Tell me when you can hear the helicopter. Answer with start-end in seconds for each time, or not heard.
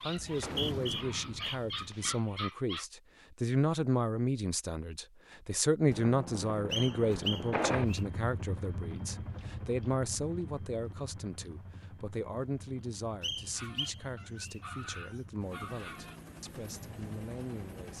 0.0-1.9, 5.9-17.9.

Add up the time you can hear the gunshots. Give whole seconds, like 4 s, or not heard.
2 s.